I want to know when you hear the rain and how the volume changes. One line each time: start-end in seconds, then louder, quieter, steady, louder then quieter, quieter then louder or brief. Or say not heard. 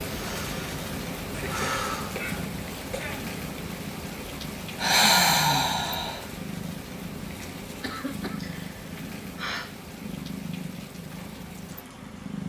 0.0-12.4 quieter.